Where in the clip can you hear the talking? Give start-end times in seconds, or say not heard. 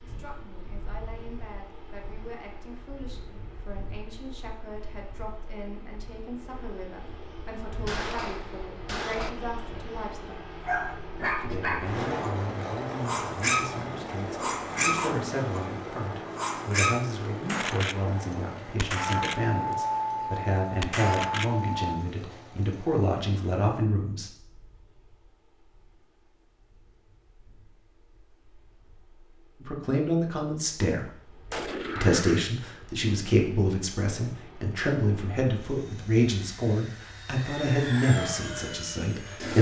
0.0-10.4, 11.3-24.3, 29.6-31.1, 31.9-39.5.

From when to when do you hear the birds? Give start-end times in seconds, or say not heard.
not heard.